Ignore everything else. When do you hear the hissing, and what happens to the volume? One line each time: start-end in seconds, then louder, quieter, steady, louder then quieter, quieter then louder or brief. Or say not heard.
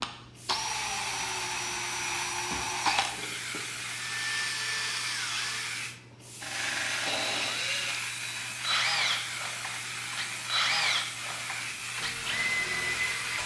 0.0-13.4 steady.